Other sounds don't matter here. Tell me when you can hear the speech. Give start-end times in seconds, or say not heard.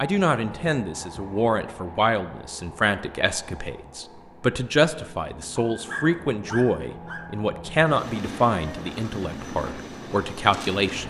0.0-11.0.